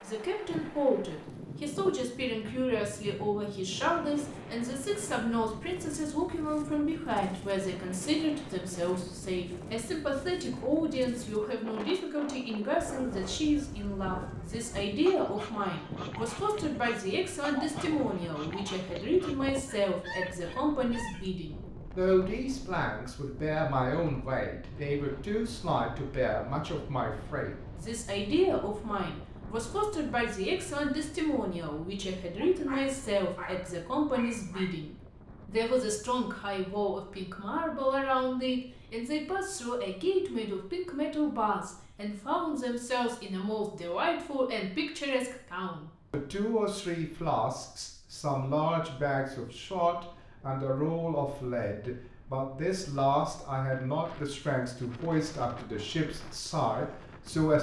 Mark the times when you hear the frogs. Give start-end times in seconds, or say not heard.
not heard.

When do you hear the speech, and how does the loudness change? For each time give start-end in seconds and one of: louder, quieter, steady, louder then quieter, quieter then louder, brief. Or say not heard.
0.0-57.5 steady.